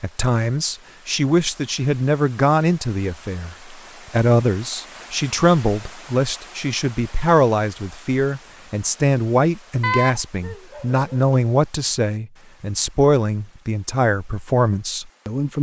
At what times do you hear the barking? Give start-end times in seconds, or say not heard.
9.8-11.3.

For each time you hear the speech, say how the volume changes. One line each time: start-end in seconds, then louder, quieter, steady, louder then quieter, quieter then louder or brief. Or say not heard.
0.0-15.5 steady.